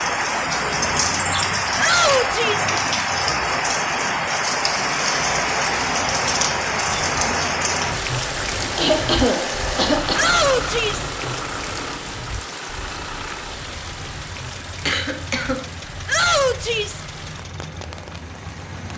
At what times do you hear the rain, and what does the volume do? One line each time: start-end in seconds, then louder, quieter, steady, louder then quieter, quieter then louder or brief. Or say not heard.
0.0-18.9 quieter.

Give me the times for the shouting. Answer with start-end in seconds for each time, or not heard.
1.8-2.7, 10.2-11.1, 16.1-17.0.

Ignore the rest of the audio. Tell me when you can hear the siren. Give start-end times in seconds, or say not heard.
not heard.